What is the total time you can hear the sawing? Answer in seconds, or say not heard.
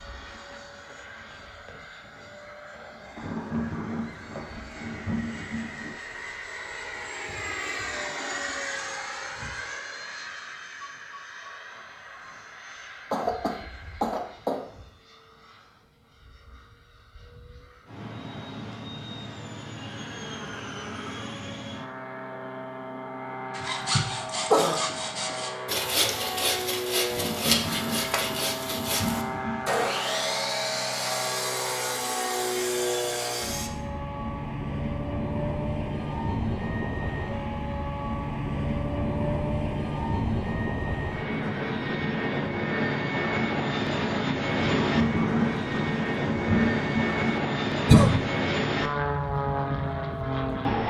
10 s.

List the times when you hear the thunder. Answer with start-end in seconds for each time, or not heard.
3.1-6.0, 27.1-29.9, 44.5-47.4.